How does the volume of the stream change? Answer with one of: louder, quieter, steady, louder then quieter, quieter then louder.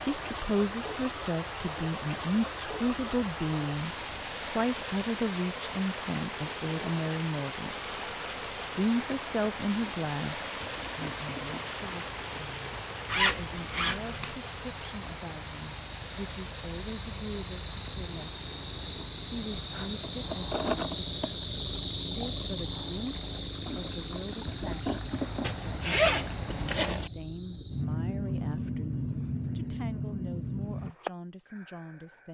quieter.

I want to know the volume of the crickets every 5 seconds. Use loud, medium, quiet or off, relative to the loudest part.
quiet, quiet, quiet, medium, loud, medium, medium.